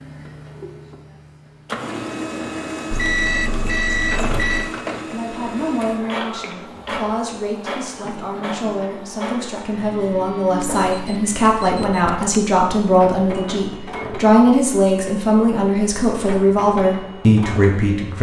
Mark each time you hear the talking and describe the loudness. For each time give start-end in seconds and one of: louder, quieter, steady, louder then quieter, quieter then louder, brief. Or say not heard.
5.0-18.1 louder.